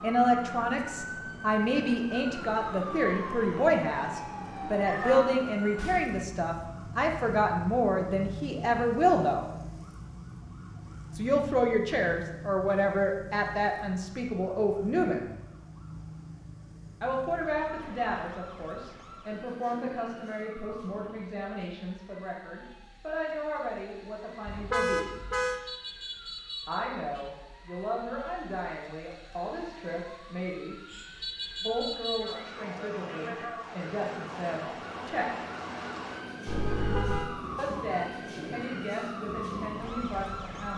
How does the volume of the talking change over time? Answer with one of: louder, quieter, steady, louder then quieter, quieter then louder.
quieter.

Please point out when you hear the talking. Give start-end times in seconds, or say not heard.
0.0-9.4, 11.2-15.2, 17.0-25.1, 26.6-30.8, 31.6-35.2, 37.5-40.7.